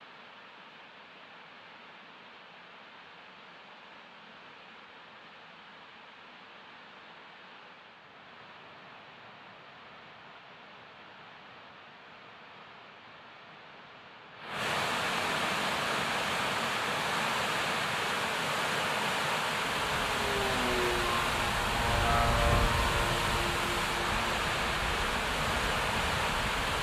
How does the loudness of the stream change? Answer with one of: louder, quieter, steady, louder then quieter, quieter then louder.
louder.